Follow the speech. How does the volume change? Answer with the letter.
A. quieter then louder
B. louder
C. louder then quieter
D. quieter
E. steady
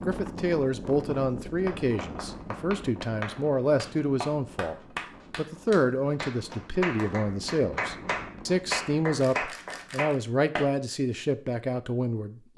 E.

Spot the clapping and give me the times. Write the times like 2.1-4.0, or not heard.
1.6-10.7.